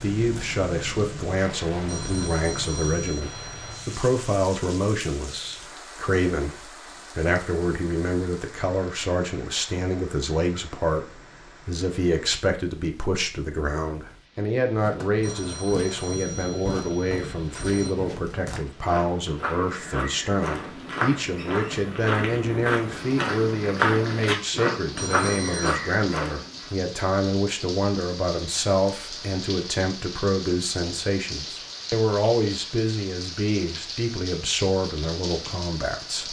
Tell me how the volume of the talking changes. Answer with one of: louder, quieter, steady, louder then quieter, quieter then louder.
steady.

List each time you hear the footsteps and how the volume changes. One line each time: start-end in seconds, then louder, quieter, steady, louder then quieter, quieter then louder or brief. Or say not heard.
14.7-26.7 louder.